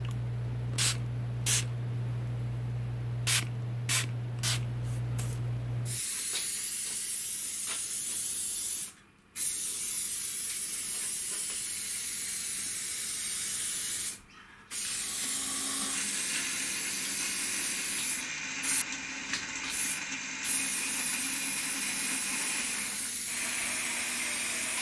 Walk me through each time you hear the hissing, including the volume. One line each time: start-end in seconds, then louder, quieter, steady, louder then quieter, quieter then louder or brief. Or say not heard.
0.0-24.7 quieter.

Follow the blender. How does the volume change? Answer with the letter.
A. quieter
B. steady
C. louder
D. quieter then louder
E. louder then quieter
B.